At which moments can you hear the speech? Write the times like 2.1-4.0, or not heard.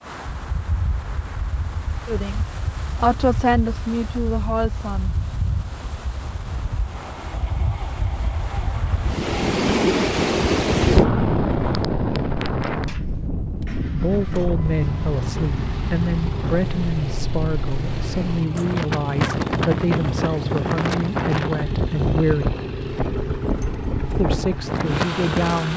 2.0-5.1, 13.9-22.5, 24.1-25.7.